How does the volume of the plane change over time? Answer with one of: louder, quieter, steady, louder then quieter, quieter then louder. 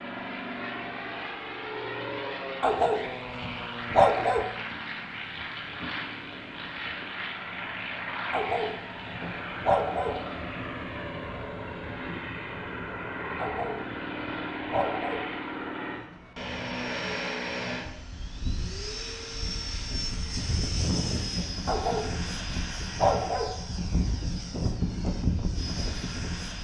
steady.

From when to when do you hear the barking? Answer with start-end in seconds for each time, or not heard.
2.6-4.5, 8.3-10.2, 13.3-15.2, 21.6-23.5.